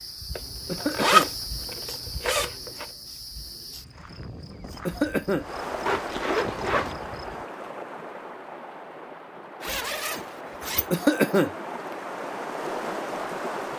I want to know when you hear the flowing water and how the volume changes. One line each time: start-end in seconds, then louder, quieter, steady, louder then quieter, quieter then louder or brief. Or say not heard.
5.3-13.7 quieter then louder.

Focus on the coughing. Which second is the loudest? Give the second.
11 s.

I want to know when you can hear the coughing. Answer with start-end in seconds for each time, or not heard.
0.7-1.3, 4.8-5.5, 10.9-11.9.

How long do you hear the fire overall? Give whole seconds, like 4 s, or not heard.
not heard.